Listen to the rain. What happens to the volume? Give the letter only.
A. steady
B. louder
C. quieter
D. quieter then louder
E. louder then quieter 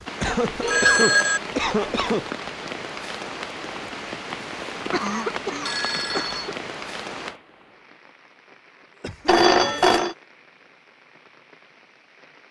C.